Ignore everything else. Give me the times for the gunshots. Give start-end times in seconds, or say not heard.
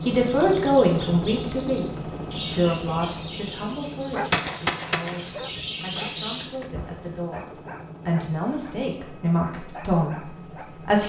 4.3-5.7.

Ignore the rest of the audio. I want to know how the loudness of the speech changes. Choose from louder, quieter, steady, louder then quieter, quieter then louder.
quieter then louder.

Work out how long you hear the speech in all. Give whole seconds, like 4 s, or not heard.
11 s.